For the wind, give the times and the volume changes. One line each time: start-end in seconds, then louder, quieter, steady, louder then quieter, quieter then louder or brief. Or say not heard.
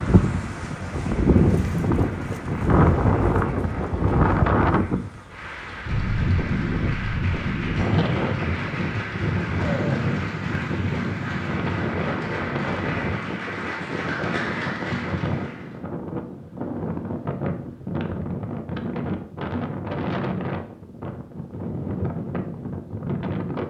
0.0-23.6 quieter.